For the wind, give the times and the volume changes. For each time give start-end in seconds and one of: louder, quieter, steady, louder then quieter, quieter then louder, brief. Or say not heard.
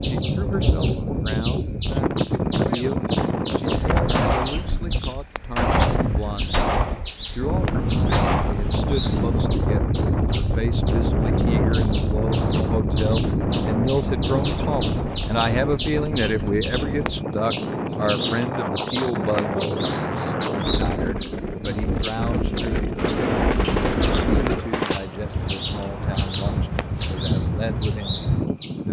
0.0-28.8 steady.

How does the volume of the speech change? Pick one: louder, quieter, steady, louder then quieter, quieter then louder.
louder then quieter.